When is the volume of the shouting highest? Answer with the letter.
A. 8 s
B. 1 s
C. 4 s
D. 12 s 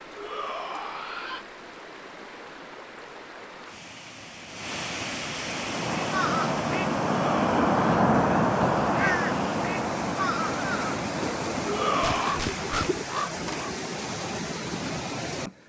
D.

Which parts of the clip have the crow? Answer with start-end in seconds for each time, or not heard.
5.3-13.8.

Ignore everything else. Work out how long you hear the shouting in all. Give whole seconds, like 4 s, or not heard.
3 s.